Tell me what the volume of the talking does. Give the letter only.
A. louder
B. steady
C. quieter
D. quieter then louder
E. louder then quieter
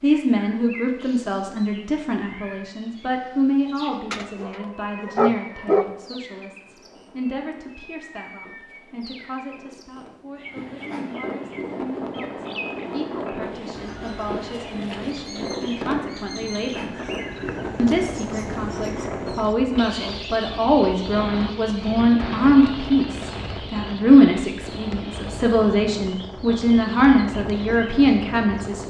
D.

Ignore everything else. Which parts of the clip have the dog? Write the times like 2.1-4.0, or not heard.
4.1-5.9.